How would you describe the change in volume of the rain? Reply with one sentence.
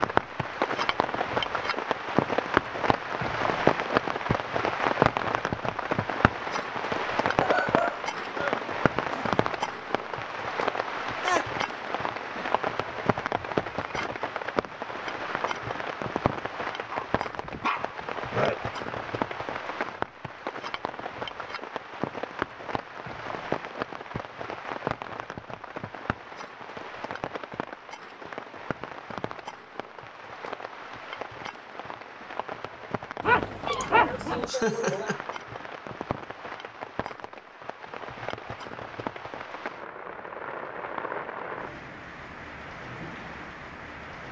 The volume of the rain goes down.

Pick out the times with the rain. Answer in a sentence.
You can hear the rain from 0.0 to 44.2 s.